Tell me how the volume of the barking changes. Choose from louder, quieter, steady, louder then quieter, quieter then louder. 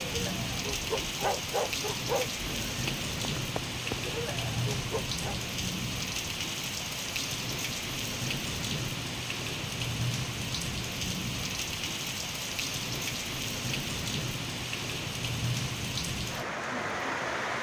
quieter then louder.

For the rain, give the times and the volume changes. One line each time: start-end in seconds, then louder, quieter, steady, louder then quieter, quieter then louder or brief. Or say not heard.
0.0-17.5 steady.